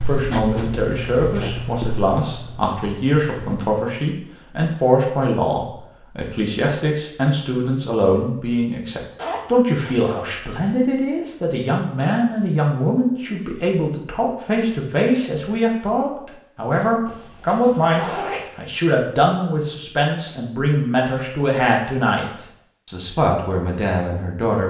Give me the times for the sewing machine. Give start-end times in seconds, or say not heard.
not heard.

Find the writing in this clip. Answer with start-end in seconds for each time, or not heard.
0.0-3.8.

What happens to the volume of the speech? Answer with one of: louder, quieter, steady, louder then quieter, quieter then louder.
steady.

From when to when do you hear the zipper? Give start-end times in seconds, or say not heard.
9.2-10.2, 17.1-18.5.